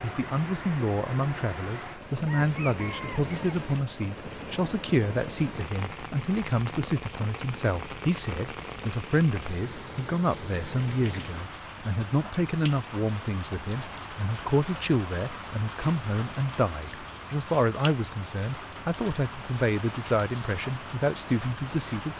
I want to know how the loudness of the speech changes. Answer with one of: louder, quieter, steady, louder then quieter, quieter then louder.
steady.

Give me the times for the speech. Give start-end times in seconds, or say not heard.
0.0-22.1.